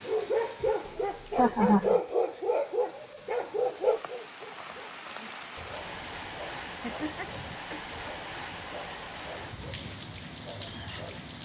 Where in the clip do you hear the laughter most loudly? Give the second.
2 s.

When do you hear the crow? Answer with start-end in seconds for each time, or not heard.
not heard.